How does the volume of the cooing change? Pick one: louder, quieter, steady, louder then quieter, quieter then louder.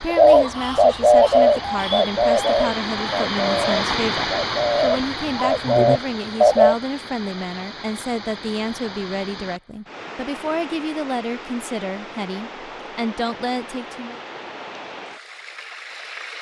quieter then louder.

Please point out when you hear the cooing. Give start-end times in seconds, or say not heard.
0.1-6.8.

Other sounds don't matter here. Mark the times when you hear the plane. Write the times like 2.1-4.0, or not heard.
not heard.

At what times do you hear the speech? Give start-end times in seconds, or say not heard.
0.0-14.2.